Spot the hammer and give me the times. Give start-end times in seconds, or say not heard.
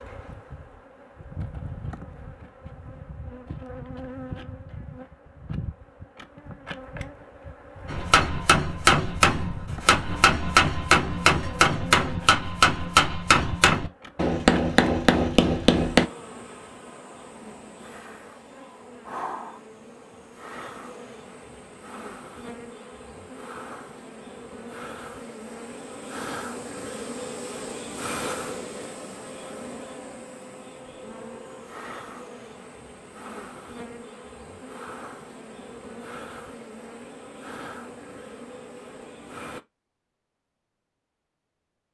7.8-16.1.